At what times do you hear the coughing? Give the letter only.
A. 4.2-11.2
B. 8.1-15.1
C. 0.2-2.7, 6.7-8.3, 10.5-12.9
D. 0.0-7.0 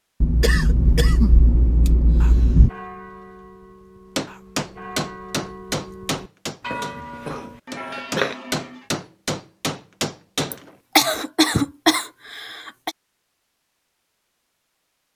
C.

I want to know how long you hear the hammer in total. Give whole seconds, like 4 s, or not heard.
7 s.